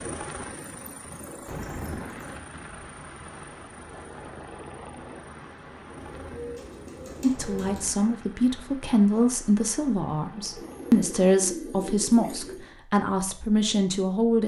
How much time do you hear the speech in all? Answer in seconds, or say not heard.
7 s.